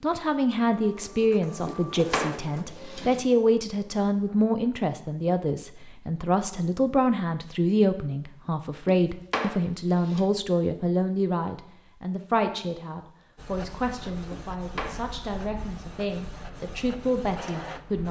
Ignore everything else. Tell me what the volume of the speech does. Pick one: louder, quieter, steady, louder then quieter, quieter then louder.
quieter.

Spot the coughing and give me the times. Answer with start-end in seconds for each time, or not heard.
not heard.